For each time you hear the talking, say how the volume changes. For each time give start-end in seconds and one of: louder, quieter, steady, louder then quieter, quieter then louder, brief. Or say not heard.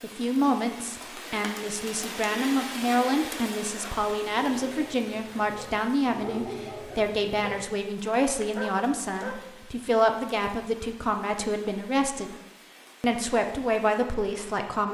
0.0-12.3 steady
13.0-14.8 brief.